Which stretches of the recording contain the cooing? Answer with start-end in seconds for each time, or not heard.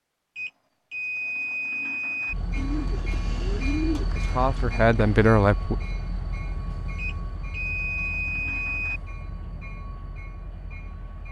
2.5-5.0.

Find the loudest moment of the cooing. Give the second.
4 s.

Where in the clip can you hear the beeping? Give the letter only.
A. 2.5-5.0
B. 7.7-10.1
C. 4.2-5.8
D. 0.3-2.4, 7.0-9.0
D.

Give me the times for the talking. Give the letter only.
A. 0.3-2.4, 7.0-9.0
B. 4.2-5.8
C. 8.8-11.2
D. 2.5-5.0
B.